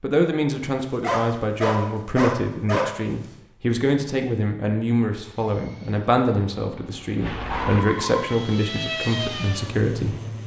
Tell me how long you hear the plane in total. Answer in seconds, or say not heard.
5 s.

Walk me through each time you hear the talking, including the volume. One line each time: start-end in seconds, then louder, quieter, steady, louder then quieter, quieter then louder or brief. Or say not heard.
0.0-10.2 steady.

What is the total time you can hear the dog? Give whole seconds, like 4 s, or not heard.
3 s.